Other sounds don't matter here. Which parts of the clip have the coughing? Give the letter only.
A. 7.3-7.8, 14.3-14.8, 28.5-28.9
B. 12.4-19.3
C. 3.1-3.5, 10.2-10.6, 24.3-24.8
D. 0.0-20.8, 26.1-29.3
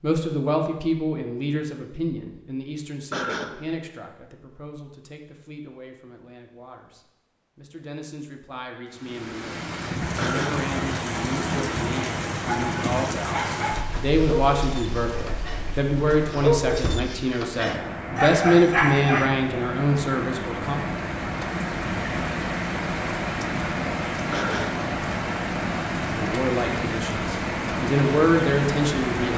C.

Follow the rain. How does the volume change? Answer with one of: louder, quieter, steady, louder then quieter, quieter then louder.
quieter then louder.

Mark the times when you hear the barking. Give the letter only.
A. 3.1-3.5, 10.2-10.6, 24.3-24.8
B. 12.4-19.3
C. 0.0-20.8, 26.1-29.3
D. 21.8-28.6
B.